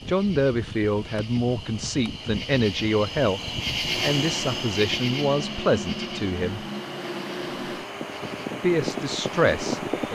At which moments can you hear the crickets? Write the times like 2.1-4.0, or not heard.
0.0-10.1.